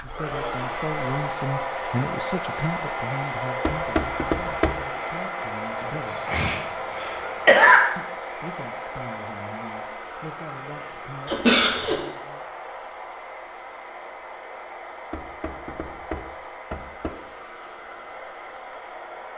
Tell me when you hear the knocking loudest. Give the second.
4 s.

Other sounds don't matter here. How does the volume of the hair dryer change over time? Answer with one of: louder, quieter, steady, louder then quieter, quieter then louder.
quieter.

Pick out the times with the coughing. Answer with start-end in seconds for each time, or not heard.
5.8-7.8, 11.2-12.1.